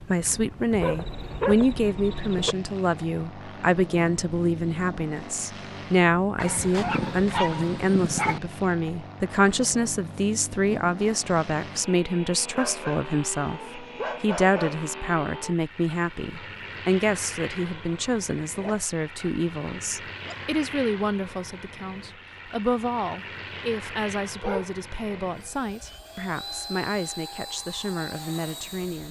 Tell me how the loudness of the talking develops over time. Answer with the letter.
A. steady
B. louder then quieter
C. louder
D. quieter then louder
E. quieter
E.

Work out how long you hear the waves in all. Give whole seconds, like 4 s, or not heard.
not heard.